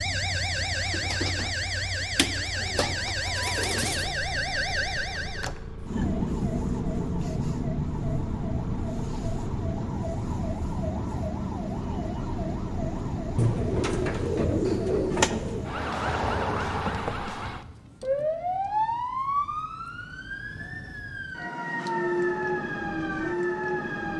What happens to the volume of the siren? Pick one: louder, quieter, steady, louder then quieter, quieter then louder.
steady.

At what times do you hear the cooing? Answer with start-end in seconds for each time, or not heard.
2.2-4.2, 13.3-15.7.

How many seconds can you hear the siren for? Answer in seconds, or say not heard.
24 s.